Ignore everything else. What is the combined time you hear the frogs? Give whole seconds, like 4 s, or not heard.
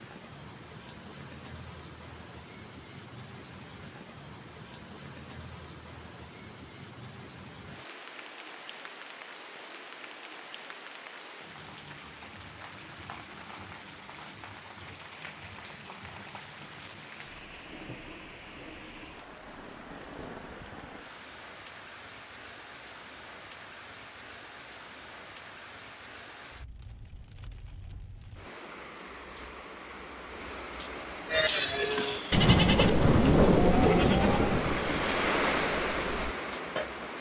not heard.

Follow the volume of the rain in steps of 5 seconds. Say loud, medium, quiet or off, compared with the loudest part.
quiet, quiet, quiet, quiet, quiet, quiet, medium, loud.